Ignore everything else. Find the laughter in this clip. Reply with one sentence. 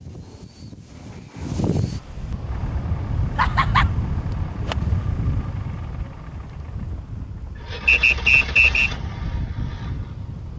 You can hear the laughter from 3.4 to 3.9 s.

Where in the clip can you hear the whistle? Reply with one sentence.
You can hear the whistle from 7.8 to 8.9 s.